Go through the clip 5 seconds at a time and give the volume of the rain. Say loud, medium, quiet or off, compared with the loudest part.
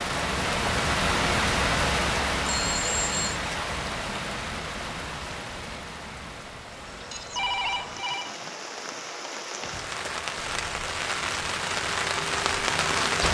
loud, medium, loud.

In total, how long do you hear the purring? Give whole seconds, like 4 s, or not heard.
not heard.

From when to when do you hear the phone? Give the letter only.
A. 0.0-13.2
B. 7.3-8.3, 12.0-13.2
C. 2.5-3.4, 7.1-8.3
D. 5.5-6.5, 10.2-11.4
C.